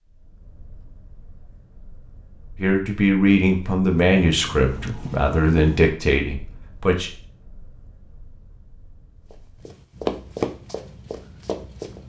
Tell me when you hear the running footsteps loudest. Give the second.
10 s.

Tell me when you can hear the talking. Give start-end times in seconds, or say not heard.
2.5-7.1.